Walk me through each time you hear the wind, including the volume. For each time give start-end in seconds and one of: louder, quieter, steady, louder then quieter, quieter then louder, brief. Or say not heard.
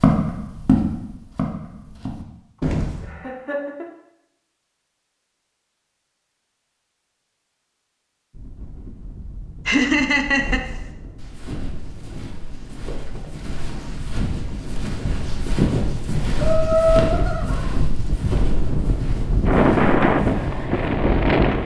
8.3-21.6 louder.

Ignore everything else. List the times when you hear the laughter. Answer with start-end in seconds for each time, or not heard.
3.0-3.9, 9.7-10.6, 16.4-17.8.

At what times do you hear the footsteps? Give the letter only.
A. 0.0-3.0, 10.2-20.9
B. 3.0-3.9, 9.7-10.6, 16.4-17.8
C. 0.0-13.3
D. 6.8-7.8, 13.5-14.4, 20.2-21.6
A.